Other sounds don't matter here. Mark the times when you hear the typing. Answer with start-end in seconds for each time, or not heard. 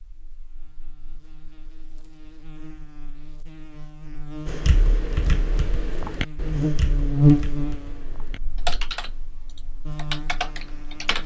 4.5-11.2.